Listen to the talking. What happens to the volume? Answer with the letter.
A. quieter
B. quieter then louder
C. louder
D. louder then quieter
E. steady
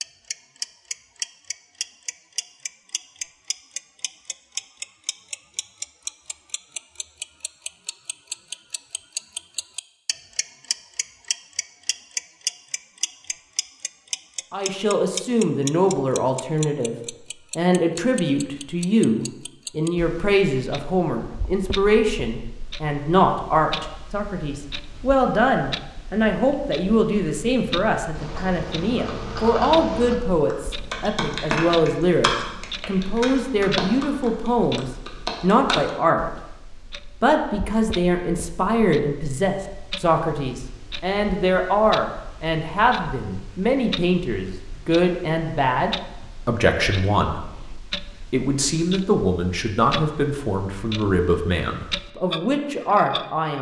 E.